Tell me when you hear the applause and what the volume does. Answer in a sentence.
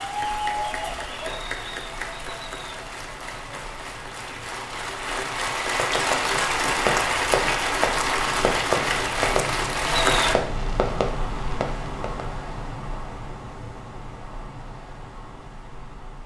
The applause can be heard from 0.0 to 10.3 s, getting quieter then louder.